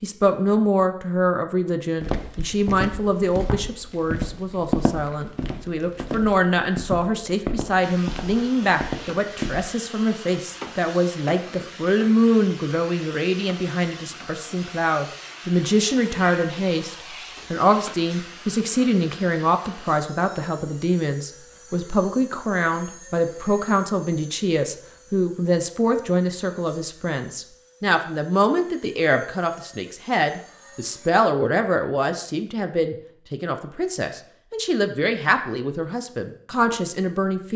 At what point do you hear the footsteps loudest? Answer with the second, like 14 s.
5 s.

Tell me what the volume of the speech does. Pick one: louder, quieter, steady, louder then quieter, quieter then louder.
steady.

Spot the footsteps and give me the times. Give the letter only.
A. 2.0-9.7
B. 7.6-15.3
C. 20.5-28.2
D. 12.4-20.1
A.